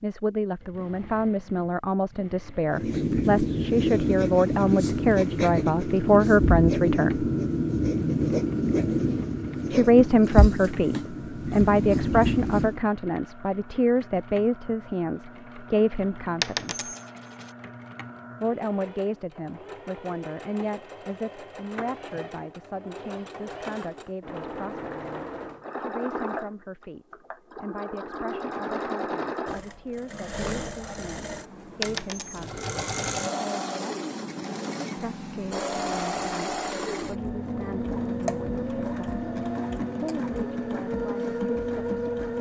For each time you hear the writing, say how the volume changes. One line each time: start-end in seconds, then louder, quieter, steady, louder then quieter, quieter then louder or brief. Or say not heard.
2.7-12.8 steady.